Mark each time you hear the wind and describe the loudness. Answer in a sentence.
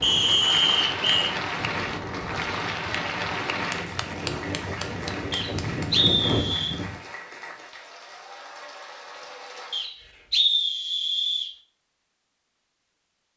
The wind can be heard from 0.0 to 7.0 s, getting louder.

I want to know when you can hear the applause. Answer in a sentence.
The applause can be heard from 0.0 to 9.9 s.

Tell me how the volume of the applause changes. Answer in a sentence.
The volume of the applause goes down.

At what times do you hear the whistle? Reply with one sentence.
The whistle can be heard from 0.0 to 1.4 s, from 5.3 to 6.8 s and from 9.7 to 11.5 s.